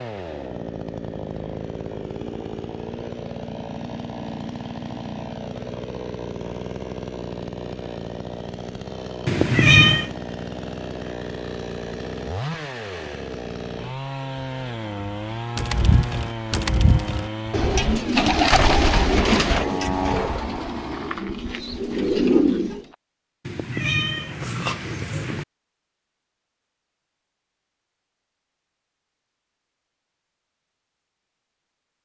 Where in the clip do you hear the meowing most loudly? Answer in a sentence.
The volume of the meowing peaks at 10 seconds.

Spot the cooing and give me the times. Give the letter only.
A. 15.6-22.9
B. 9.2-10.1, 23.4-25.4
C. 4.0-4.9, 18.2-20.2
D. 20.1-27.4
A.